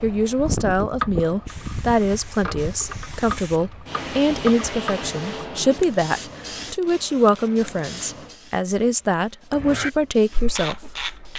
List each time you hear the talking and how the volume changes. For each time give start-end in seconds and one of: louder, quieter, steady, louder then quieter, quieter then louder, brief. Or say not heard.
0.0-11.3 steady.